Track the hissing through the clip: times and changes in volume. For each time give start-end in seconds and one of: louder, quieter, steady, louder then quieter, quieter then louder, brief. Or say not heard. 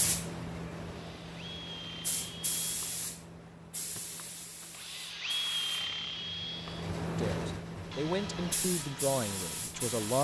0.0-10.1 quieter then louder.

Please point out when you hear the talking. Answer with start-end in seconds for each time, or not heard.
7.2-10.1.